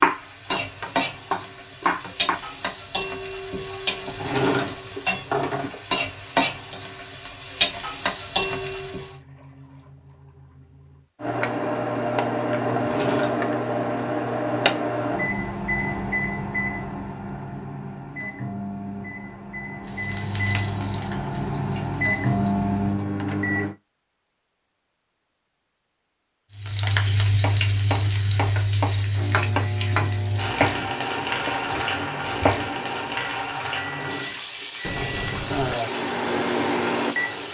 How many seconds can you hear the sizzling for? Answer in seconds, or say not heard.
23 s.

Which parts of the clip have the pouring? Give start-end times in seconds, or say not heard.
8.4-11.1, 34.8-35.8.